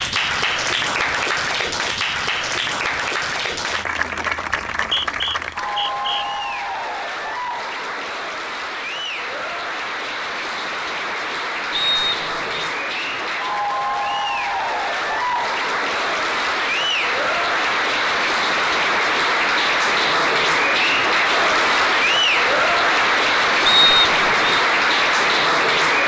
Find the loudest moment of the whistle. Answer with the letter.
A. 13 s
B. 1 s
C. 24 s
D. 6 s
C.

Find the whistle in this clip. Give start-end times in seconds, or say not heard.
4.7-6.2, 11.7-12.7, 23.6-24.6.